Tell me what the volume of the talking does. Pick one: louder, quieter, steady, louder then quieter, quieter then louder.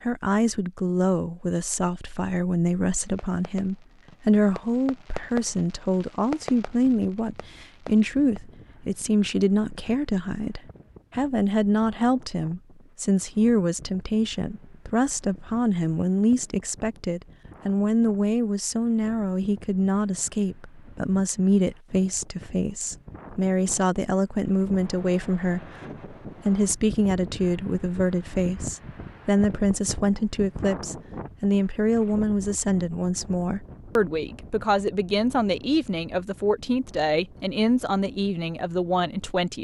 steady.